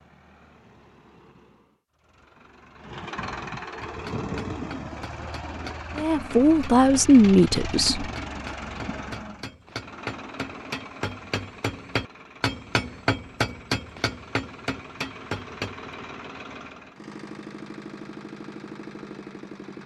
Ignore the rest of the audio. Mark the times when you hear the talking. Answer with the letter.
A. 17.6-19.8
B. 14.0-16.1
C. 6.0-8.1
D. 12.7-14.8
C.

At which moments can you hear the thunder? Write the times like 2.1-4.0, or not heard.
not heard.